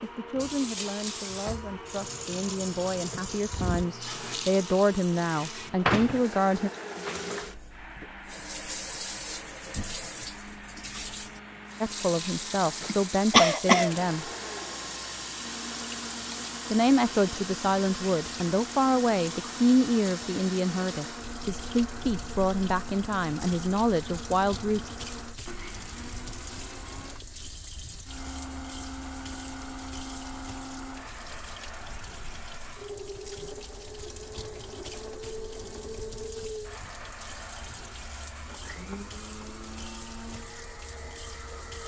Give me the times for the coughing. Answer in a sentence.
You can hear the coughing from 12.8 to 13.9 s.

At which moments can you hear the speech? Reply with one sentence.
You can hear the speech from 0.0 to 6.7 s, from 11.8 to 14.3 s and from 16.7 to 24.9 s.